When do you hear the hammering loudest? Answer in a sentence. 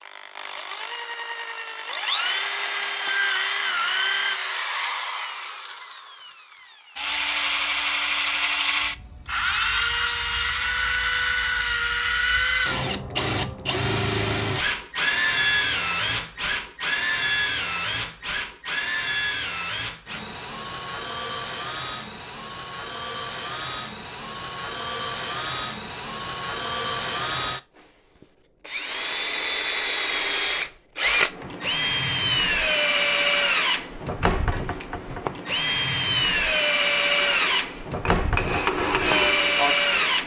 The loudest moment of the hammering is at 39 seconds.